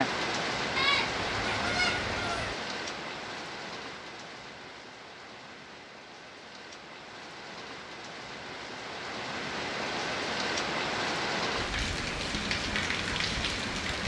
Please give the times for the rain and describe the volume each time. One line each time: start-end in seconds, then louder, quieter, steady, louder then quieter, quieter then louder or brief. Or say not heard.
0.0-14.0 quieter then louder.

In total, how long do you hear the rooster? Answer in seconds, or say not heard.
2 s.